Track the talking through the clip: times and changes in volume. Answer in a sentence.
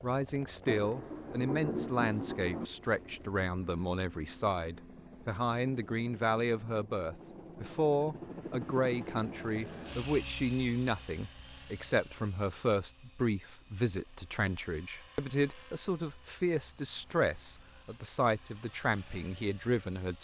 The talking can be heard from 0.0 to 20.1 s, at a steady volume.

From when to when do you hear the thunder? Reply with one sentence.
The thunder can be heard from 0.7 to 2.7 s.